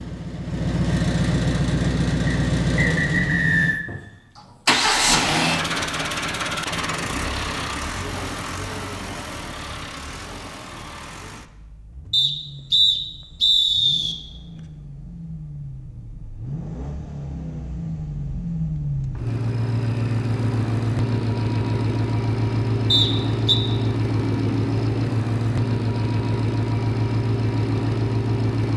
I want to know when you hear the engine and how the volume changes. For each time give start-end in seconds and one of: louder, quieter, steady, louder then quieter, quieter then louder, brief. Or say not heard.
0.0-28.7 quieter then louder.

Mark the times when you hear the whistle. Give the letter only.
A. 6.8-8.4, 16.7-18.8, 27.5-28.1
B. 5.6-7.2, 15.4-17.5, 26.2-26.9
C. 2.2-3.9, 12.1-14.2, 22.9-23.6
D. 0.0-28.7
C.